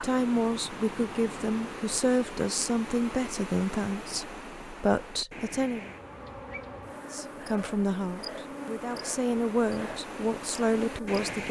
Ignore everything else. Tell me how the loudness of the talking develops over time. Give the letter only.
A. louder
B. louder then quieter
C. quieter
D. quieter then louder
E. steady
E.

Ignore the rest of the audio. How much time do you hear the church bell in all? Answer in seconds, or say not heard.
not heard.